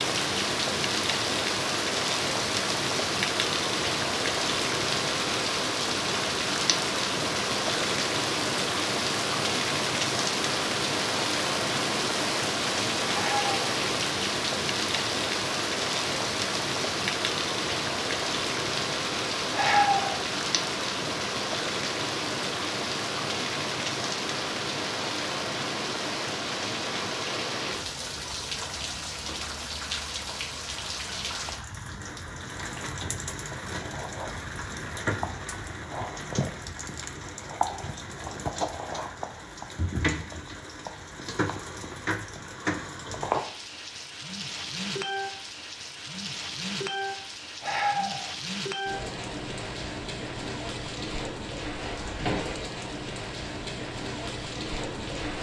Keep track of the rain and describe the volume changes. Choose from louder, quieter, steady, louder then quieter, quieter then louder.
quieter.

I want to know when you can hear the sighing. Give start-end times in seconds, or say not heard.
13.1-13.6, 19.6-20.2, 47.6-48.3.